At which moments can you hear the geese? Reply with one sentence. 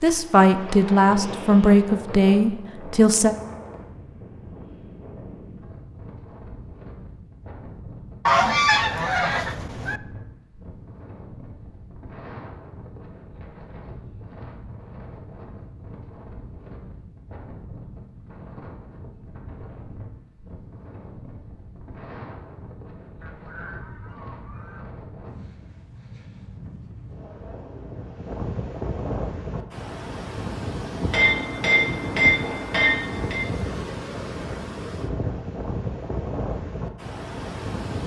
You can hear the geese from 8.2 to 10.0 s and from 23.2 to 24.9 s.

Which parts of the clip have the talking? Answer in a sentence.
You can hear the talking from 0.0 to 3.4 s.